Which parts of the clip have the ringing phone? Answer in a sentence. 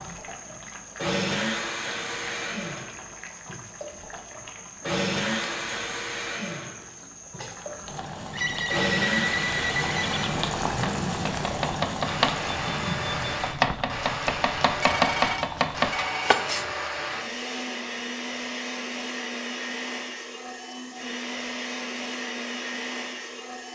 You can hear the ringing phone from 8.3 to 10.3 s and from 14.8 to 16.4 s.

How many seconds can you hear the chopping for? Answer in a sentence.
The chopping can be heard for 6 seconds in total.